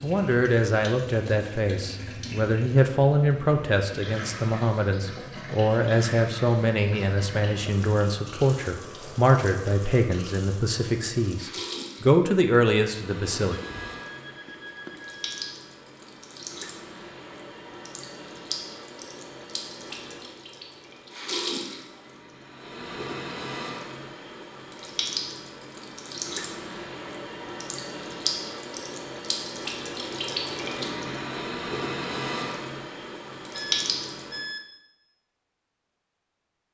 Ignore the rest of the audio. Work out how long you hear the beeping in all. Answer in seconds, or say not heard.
3 s.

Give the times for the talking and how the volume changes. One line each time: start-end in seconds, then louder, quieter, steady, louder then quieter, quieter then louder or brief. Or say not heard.
0.0-13.6 steady.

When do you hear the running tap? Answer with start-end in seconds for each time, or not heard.
0.0-34.5.